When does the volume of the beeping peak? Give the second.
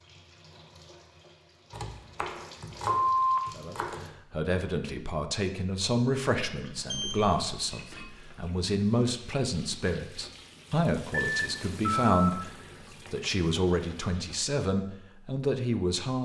3 s.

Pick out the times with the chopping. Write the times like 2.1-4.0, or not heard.
1.7-4.2.